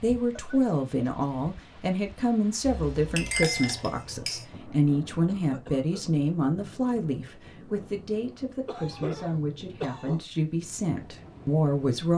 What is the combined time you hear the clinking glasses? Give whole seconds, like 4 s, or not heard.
2 s.